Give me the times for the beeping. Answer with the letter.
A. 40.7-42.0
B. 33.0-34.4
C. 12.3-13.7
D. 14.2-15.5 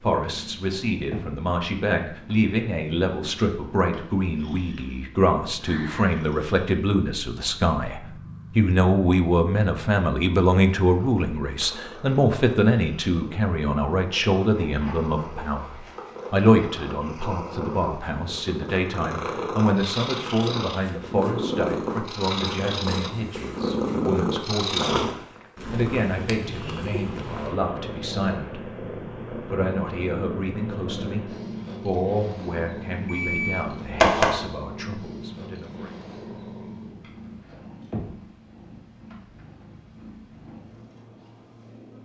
B.